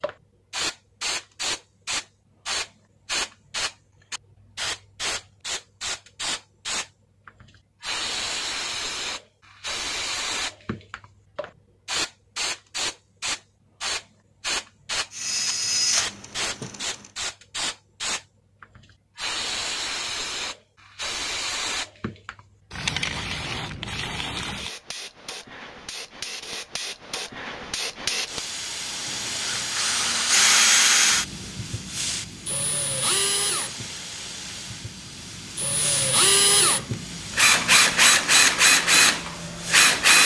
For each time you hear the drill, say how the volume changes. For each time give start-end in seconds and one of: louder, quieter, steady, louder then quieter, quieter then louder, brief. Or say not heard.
15.1-16.9 brief
29.1-40.2 quieter then louder.